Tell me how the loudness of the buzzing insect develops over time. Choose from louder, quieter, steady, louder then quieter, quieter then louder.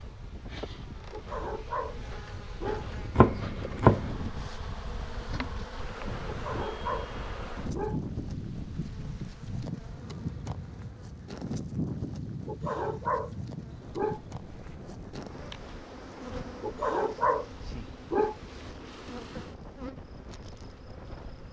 louder then quieter.